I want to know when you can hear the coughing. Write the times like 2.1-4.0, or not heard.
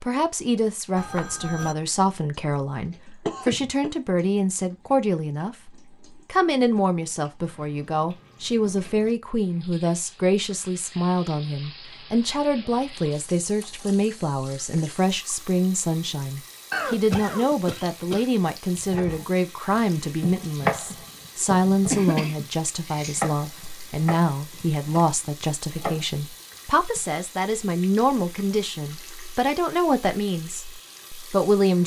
3.2-3.9, 16.7-18.2, 21.9-23.2.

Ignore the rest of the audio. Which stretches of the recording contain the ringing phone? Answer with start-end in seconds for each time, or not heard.
0.9-1.8.